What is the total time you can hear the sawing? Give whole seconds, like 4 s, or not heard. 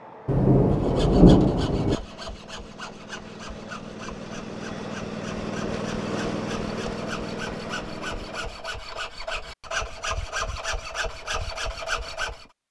12 s.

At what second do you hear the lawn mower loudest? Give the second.
6 s.